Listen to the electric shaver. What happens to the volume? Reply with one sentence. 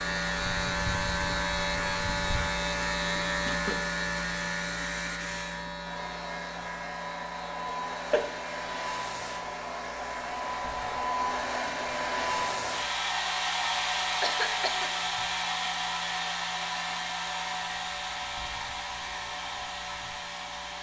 The volume of the electric shaver goes down.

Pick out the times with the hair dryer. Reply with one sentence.
You can hear the hair dryer from 0.0 to 20.7 s.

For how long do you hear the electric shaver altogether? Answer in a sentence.
The electric shaver can be heard for 21 seconds in total.